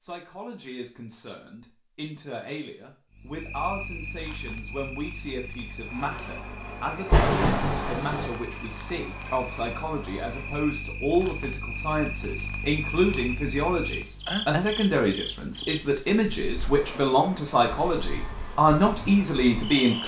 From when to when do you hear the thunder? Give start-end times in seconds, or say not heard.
7.1-8.3.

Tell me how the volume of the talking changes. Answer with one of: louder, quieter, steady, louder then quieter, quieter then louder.
louder.